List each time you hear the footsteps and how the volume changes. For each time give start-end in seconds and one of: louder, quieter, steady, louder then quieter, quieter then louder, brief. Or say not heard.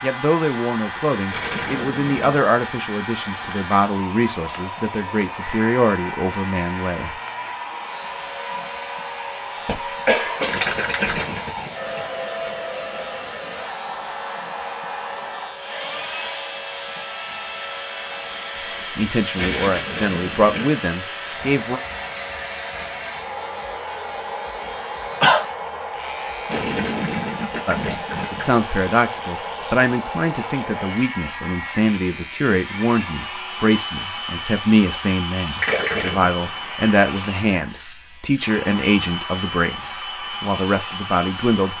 not heard.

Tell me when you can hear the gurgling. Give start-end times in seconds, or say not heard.
1.2-2.4, 10.4-12.0, 19.4-20.7, 26.4-28.5, 35.6-36.5.